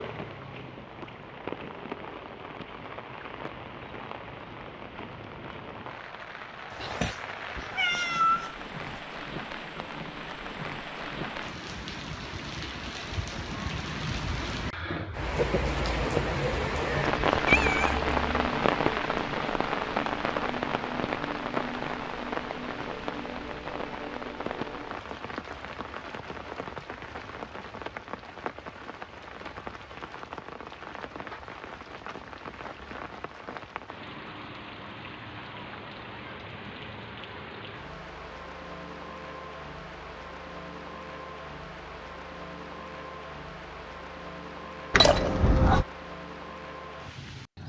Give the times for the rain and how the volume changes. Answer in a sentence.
The rain can be heard from 0.0 to 47.6 s, getting louder then quieter.